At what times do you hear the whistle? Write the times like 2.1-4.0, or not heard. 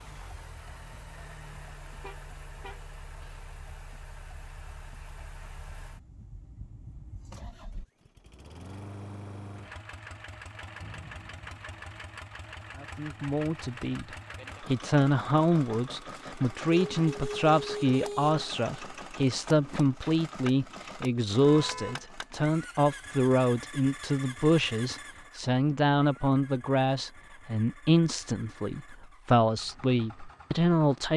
10.8-11.7.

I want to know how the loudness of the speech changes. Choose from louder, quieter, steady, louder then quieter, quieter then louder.
steady.